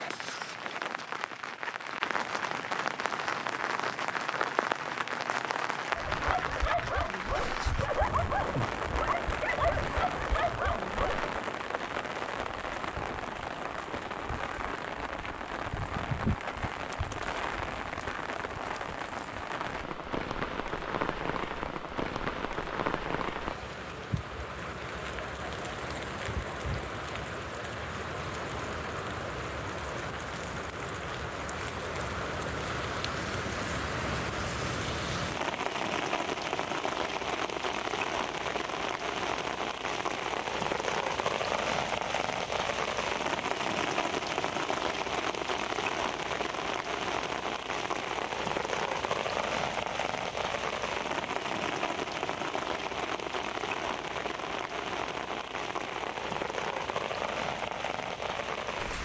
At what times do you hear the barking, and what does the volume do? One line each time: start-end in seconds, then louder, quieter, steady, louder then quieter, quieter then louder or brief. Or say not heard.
5.9-11.3 steady.